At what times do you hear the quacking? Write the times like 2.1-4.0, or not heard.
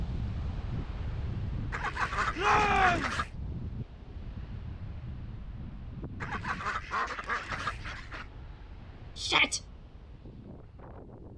1.7-3.3, 6.2-8.2.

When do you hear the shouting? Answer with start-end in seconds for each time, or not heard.
2.4-3.2, 9.2-9.6.